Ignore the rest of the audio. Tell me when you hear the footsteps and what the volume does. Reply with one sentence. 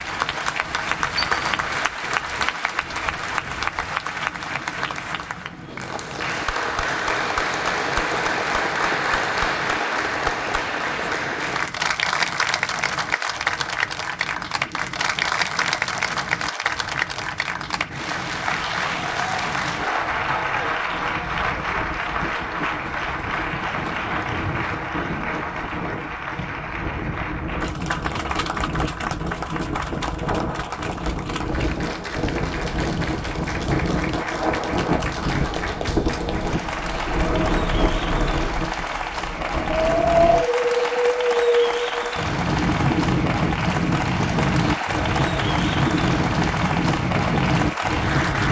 The footsteps can't be heard in this clip.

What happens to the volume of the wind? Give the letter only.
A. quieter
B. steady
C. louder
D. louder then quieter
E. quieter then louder
C.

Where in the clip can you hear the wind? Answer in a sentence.
The wind can be heard from 0.0 to 48.4 s.